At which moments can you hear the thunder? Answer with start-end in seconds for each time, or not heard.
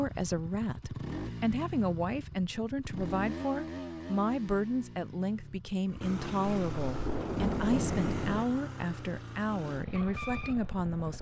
6.7-8.4.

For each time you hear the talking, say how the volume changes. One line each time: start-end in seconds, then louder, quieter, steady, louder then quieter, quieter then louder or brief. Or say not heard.
0.0-11.1 steady.